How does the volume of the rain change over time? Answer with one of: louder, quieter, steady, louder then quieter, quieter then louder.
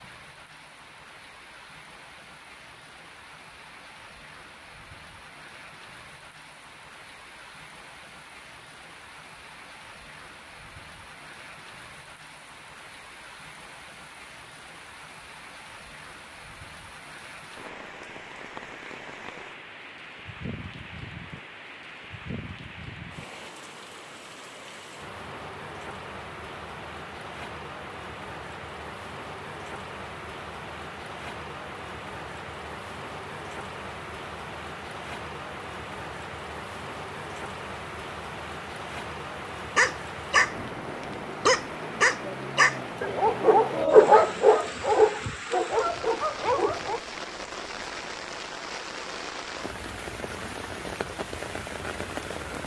louder.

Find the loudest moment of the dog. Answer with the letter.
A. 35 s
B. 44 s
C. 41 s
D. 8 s
B.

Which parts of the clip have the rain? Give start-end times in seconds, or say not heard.
0.0-52.6.